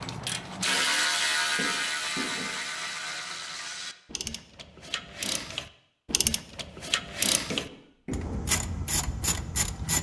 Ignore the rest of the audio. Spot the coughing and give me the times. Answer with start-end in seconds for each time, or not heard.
1.6-2.5, 7.5-8.4.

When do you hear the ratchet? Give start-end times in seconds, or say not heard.
0.0-9.9.